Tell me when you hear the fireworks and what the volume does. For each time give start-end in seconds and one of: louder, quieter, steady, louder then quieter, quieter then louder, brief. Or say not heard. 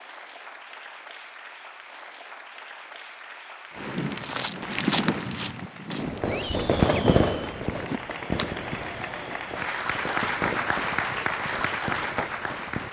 3.8-12.8 louder then quieter.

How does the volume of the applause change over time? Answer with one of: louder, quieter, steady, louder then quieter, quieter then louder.
louder.